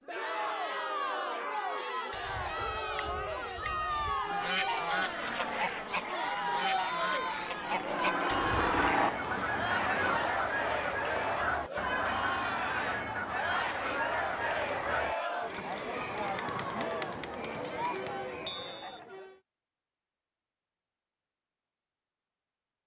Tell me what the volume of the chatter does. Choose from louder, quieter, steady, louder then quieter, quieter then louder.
steady.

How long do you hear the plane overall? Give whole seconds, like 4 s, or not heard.
5 s.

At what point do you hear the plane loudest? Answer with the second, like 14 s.
9 s.